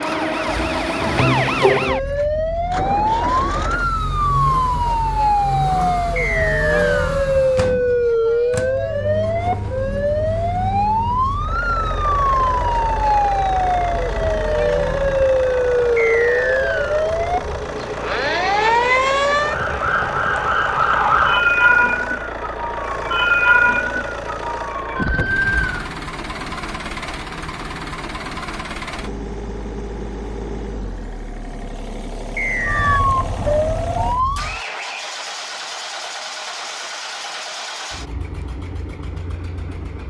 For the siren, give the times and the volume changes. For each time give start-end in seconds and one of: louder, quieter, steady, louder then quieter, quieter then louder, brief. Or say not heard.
0.0-25.9 steady
32.6-34.6 brief.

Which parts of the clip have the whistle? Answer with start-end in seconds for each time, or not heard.
6.2-7.2, 15.9-17.1, 32.4-33.0.